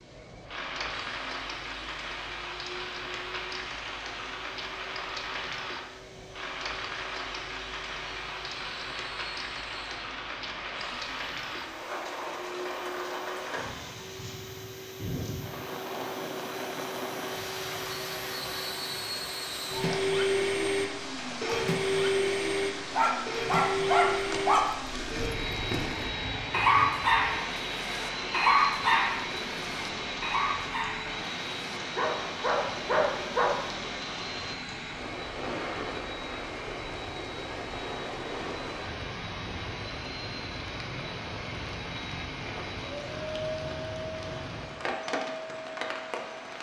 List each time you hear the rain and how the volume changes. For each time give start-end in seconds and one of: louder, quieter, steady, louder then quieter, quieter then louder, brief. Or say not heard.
0.0-46.5 steady.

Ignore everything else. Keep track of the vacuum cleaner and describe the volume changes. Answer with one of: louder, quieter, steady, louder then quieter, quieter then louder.
louder then quieter.